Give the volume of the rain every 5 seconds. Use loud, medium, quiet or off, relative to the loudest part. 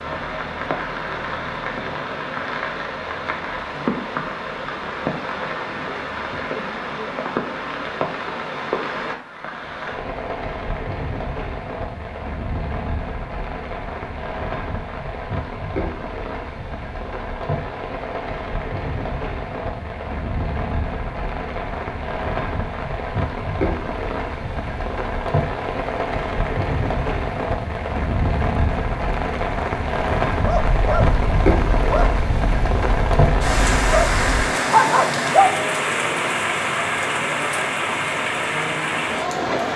medium, medium, medium, medium, medium, loud, loud, loud.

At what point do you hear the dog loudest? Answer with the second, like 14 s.
35 s.